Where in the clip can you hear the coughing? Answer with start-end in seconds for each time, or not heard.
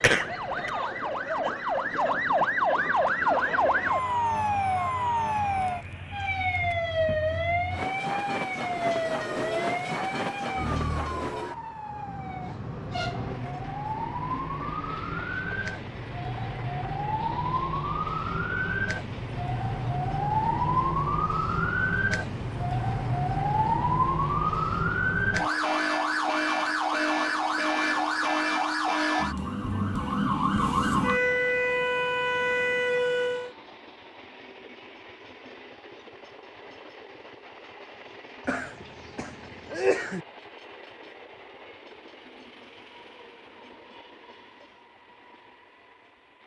0.0-0.7, 38.5-40.2.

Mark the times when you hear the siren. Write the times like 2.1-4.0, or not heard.
0.0-33.5.